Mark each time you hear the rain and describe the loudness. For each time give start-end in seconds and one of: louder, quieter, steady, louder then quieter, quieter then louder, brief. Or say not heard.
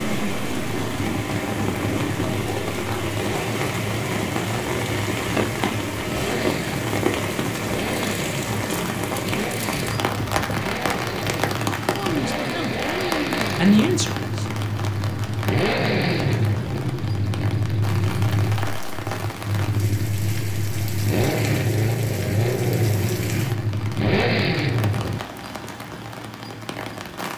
0.0-27.3 quieter.